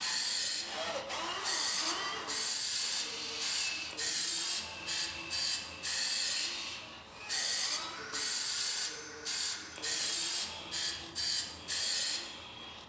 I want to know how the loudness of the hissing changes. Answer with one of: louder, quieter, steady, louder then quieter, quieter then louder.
steady.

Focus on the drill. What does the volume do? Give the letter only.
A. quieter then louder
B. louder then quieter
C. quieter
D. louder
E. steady
C.